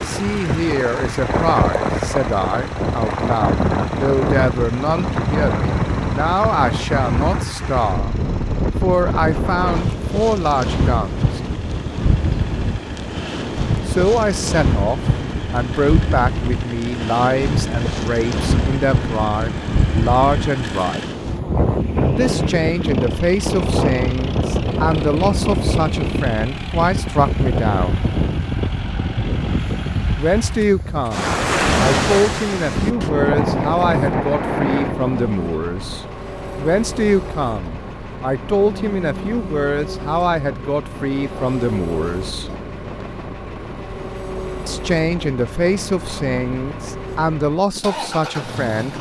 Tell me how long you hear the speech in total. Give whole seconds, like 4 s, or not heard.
40 s.